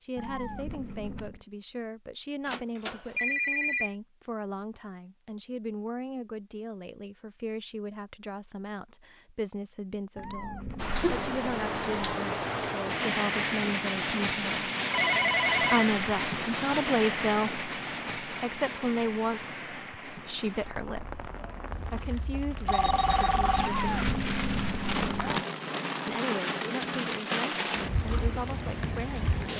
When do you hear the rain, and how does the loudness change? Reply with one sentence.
You can hear the rain from 10.8 to 29.5 s, getting quieter then louder.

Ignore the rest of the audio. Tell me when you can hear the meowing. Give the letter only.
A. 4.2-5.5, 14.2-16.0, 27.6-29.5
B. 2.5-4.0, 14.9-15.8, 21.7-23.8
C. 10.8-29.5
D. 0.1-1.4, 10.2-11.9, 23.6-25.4
D.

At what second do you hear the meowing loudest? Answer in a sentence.
The volume of the meowing peaks at 24 seconds.